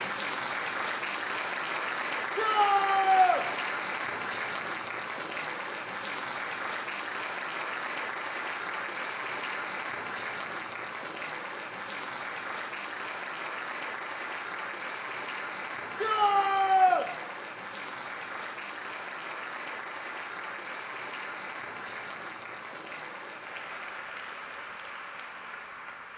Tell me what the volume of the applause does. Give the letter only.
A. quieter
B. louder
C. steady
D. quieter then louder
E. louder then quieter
A.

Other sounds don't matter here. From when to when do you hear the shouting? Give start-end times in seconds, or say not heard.
2.4-3.5, 16.0-17.1.